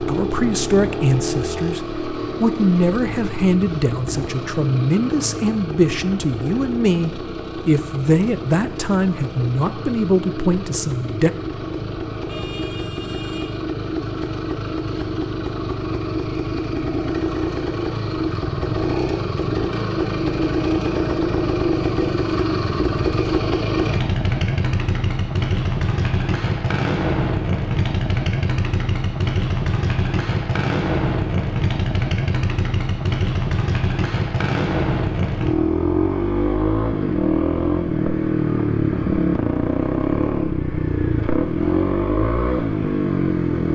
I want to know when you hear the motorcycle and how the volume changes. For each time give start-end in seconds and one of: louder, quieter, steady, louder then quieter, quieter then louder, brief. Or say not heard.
0.0-43.6 louder.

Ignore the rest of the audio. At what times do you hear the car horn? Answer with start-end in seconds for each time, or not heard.
12.2-13.6.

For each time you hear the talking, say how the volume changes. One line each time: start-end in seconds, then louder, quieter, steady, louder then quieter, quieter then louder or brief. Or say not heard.
0.1-11.3 steady.